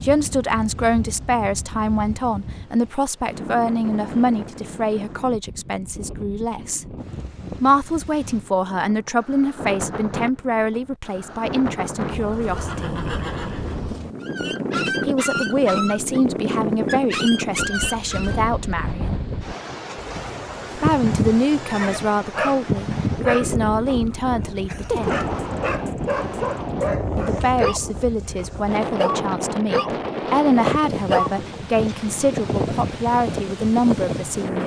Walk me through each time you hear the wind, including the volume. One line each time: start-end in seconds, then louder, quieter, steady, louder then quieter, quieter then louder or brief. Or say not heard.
0.0-34.6 louder.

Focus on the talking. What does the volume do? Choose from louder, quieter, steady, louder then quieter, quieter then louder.
steady.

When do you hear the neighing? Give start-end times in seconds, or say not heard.
12.1-14.2, 19.9-22.0.